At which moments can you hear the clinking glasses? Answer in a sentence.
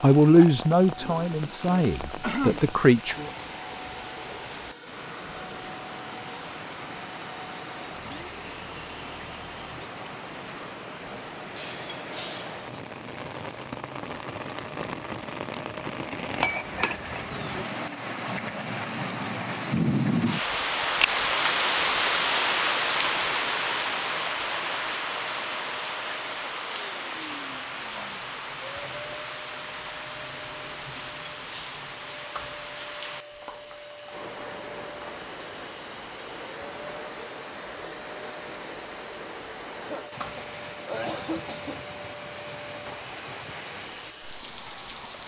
The clinking glasses can be heard from 11.6 to 12.8 s, from 16.4 to 17.6 s and from 30.9 to 33.0 s.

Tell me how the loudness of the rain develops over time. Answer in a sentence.
The volume of the rain goes up, then down.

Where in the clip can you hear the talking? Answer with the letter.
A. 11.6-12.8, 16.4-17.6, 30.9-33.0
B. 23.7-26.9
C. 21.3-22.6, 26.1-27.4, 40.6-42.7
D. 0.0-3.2
D.